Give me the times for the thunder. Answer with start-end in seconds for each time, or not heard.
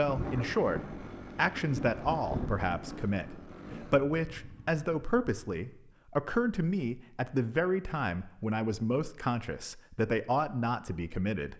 0.0-4.0.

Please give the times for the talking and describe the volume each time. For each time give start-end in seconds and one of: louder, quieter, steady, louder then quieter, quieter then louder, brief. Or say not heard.
0.0-11.5 steady.